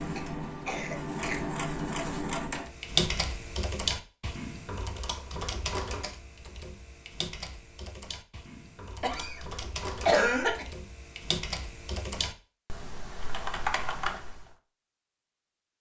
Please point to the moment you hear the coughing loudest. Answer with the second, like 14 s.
10 s.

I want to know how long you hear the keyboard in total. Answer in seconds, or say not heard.
12 s.